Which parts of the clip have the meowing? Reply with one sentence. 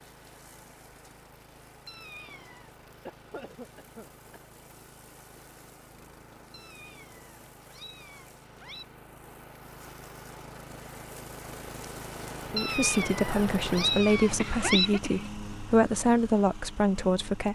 You can hear the meowing from 1.9 to 2.8 s, from 6.5 to 8.8 s and from 12.6 to 14.9 s.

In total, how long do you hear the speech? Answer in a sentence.
The speech can be heard for 5 seconds in total.